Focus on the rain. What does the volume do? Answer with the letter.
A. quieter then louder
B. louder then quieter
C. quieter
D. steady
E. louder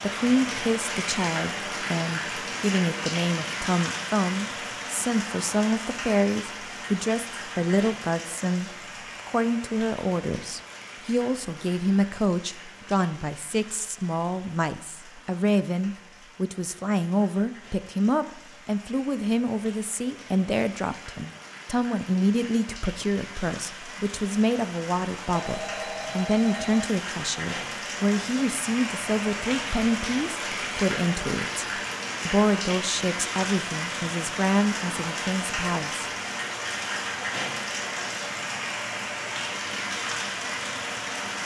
A.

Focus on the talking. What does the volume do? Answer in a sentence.
The loudness of the talking stays about the same.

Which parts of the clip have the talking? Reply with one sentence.
You can hear the talking from 0.0 to 36.1 s.